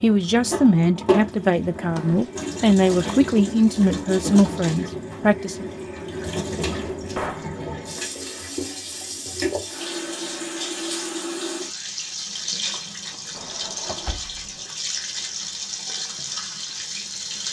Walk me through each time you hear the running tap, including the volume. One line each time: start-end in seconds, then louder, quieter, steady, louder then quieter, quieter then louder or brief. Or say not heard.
0.0-17.4 steady.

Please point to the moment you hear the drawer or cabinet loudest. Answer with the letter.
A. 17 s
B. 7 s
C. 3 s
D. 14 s
B.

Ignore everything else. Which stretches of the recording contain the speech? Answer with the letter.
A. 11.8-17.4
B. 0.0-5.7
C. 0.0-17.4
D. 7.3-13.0
B.